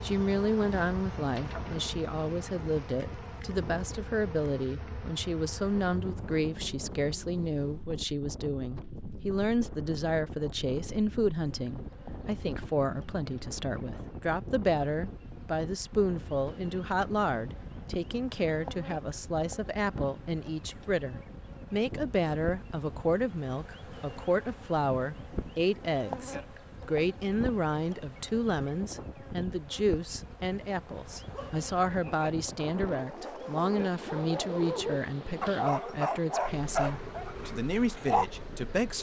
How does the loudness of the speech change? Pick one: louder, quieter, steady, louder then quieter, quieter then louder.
steady.